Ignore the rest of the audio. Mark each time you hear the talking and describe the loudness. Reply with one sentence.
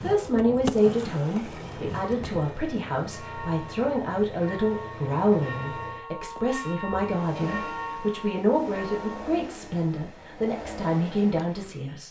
The talking can be heard from 0.0 to 12.0 s, at a steady volume.